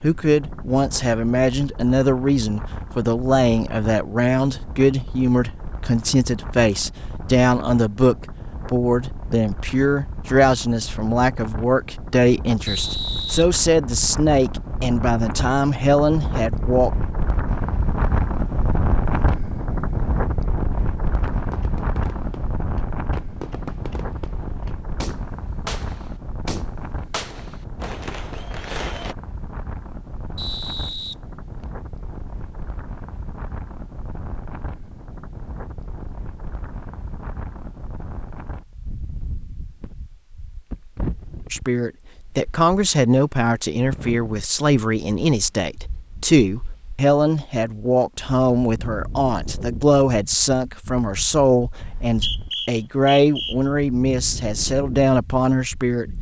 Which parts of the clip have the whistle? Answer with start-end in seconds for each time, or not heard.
12.7-14.2, 30.4-31.7, 51.8-53.5.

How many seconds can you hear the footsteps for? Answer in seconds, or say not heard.
not heard.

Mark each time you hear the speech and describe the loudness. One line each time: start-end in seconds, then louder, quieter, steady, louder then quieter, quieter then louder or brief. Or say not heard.
0.0-16.9 steady
41.5-56.1 steady.